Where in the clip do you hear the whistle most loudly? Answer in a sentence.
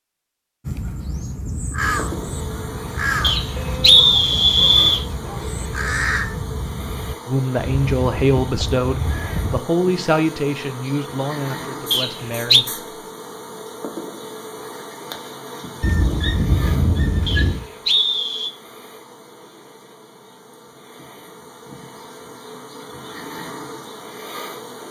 The loudest moment of the whistle is at 4 seconds.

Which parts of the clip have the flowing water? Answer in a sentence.
You can't hear the flowing water here.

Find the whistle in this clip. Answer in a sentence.
The whistle can be heard from 3.2 to 5.0 s, from 11.9 to 12.7 s and from 17.2 to 18.5 s.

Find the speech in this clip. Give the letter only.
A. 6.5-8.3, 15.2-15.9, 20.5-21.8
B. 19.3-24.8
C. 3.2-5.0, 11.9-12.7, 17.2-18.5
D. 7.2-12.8
D.